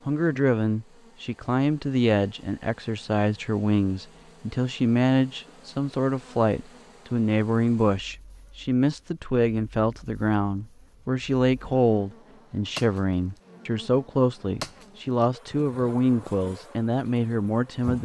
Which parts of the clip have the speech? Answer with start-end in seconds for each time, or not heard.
0.1-18.0.